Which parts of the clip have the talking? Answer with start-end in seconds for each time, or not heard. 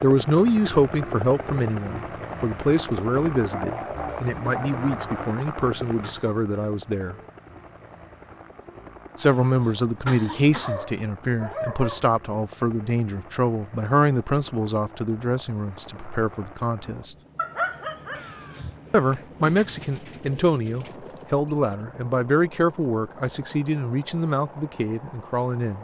0.0-7.2, 9.2-17.1, 18.9-25.7.